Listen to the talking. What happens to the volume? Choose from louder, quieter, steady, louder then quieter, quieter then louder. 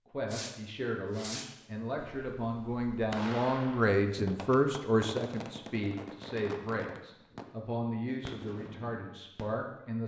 louder then quieter.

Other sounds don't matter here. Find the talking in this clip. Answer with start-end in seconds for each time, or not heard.
0.1-10.0.